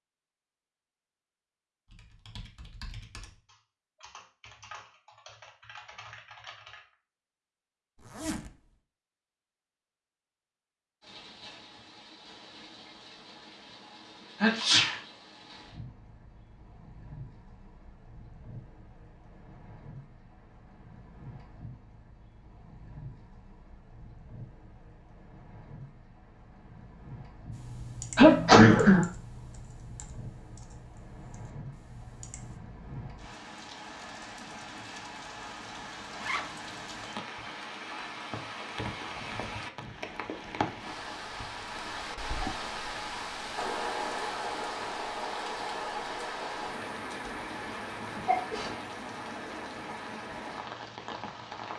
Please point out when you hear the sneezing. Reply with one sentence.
You can hear the sneezing from 14.4 to 14.9 s, from 28.1 to 29.1 s and from 48.2 to 48.8 s.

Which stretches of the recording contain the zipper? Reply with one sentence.
You can hear the zipper from 8.0 to 8.5 s and from 36.1 to 36.6 s.